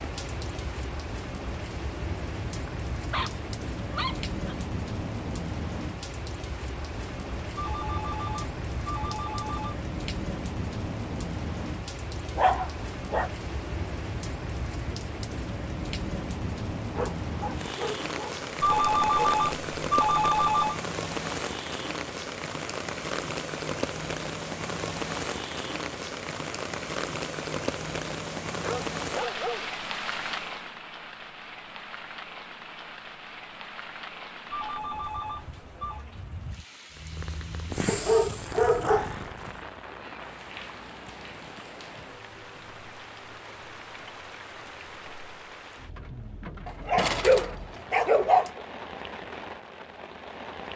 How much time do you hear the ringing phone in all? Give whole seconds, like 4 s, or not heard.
6 s.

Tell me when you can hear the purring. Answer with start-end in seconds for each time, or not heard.
36.9-42.8.